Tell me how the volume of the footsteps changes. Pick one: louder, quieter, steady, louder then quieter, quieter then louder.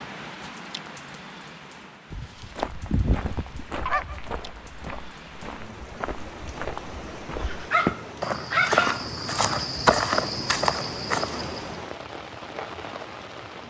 louder.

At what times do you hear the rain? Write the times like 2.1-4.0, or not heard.
0.0-13.6.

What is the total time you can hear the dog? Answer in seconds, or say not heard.
4 s.